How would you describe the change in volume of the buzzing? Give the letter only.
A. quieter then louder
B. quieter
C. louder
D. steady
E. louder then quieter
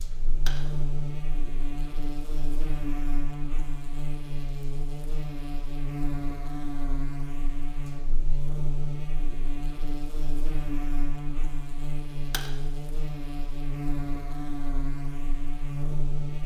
D.